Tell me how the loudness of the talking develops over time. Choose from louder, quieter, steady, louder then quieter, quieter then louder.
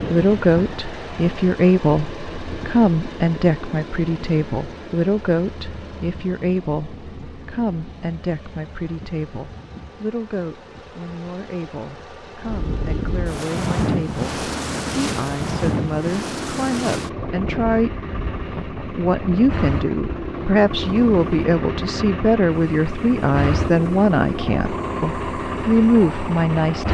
quieter then louder.